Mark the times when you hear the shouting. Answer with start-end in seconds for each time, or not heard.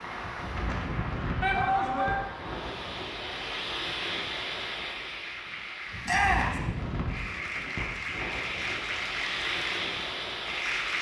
1.4-2.1, 6.0-6.6.